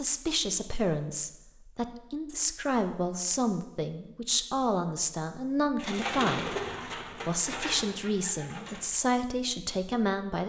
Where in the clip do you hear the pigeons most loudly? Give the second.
6 s.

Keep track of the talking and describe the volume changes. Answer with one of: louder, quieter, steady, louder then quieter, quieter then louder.
steady.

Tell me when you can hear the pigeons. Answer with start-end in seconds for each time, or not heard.
5.8-8.9.